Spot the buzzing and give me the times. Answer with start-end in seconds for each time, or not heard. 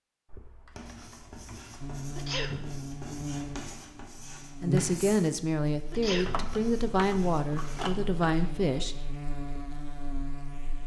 1.8-10.8.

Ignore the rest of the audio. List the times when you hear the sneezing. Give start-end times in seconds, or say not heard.
2.1-2.7, 5.9-6.5.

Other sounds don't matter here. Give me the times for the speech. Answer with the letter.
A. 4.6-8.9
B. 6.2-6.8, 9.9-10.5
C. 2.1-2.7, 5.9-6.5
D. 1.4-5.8
A.